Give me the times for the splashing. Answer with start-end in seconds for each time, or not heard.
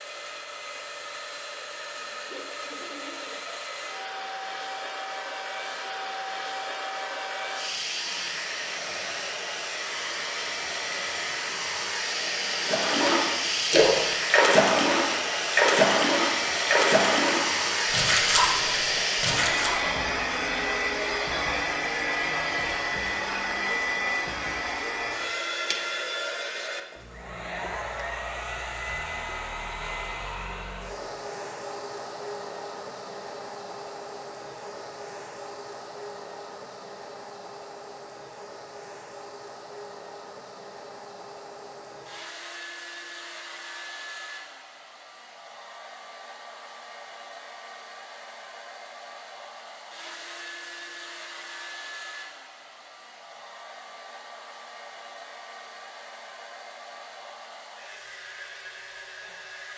12.6-19.8.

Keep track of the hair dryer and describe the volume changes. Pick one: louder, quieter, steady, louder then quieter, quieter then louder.
louder then quieter.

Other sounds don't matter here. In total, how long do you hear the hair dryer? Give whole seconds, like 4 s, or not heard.
60 s.